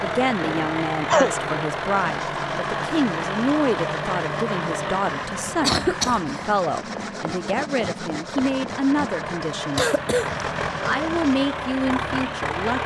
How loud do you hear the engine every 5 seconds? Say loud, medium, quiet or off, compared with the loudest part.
loud, medium, loud.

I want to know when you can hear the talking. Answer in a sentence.
The talking can be heard from 0.0 to 9.8 s and from 10.8 to 12.8 s.